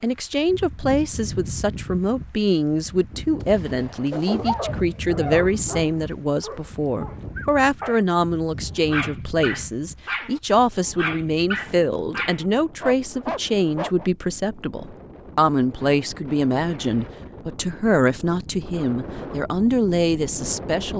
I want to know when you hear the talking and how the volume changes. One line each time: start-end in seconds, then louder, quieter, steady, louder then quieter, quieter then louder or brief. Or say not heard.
0.0-20.9 steady.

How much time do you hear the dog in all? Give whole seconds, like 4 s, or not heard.
10 s.